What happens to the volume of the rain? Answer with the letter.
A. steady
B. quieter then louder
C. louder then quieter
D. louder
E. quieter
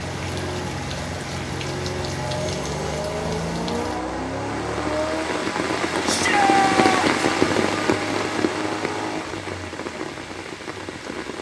C.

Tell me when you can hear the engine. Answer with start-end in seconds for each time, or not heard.
0.0-11.3.